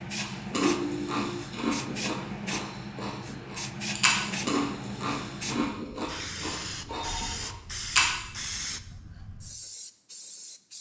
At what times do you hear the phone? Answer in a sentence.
The phone can be heard from 0.7 to 1.4 s and from 6.8 to 7.5 s.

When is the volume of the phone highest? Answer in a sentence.
The loudest moment of the phone is at 1 second.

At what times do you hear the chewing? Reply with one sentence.
The chewing can be heard from 0.1 to 8.2 s.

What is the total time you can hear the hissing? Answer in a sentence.
You can hear the hissing for 11 seconds altogether.